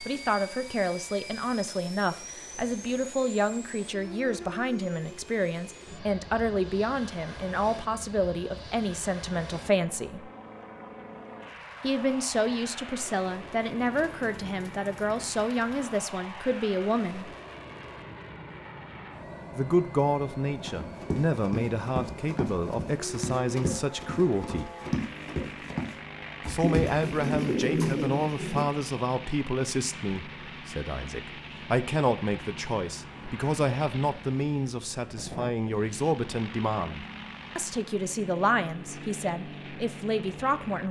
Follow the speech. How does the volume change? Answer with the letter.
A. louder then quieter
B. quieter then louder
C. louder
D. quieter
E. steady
E.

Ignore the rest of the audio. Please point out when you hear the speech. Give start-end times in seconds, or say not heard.
0.0-10.3, 11.8-17.4, 19.6-24.7, 26.4-40.8.